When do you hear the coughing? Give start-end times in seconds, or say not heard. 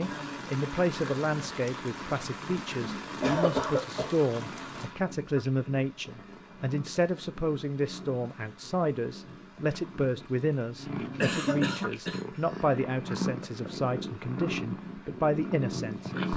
3.2-4.2, 11.2-12.6.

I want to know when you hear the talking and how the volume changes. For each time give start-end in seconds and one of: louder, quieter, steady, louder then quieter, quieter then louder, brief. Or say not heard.
0.0-16.3 steady.